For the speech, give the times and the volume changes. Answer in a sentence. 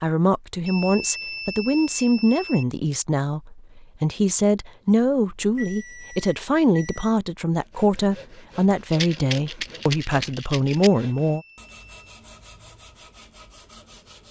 The speech can be heard from 0.0 to 11.4 s, at a steady volume.